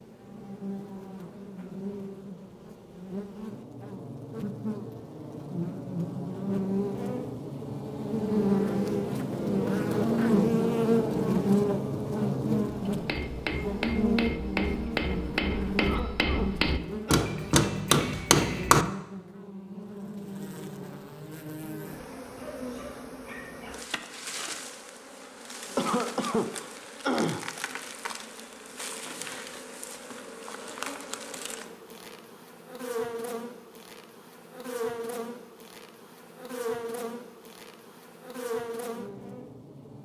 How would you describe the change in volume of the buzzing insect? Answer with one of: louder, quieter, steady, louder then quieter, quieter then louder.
louder then quieter.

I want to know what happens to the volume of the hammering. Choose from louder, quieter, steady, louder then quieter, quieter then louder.
louder.